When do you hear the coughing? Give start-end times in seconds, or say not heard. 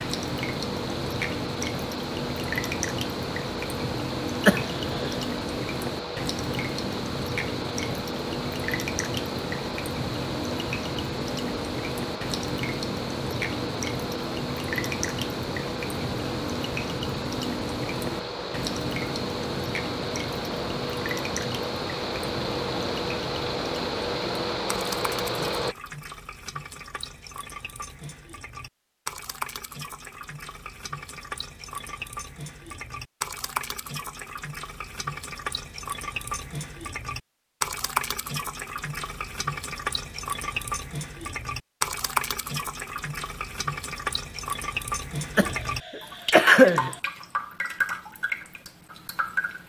4.5-5.2, 45.4-47.0.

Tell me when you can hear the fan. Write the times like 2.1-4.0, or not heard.
0.0-25.8.